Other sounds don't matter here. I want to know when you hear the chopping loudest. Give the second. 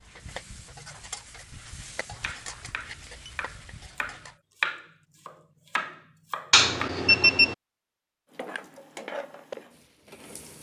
5 s.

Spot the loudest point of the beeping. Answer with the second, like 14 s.
7 s.